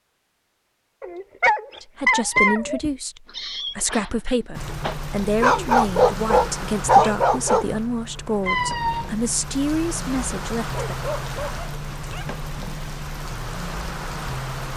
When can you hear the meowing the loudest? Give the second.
9 s.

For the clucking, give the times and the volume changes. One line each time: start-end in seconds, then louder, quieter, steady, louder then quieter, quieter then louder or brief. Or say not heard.
not heard.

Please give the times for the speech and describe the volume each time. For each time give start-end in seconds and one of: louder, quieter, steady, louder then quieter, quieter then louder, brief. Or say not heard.
1.8-10.8 steady.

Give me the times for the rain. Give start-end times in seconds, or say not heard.
4.5-14.7.